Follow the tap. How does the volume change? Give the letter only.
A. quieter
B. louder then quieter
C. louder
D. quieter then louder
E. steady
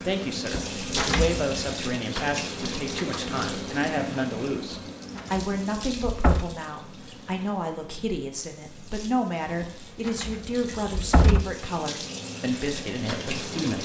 D.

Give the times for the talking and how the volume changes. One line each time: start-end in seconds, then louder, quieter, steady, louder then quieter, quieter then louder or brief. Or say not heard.
0.0-13.8 steady.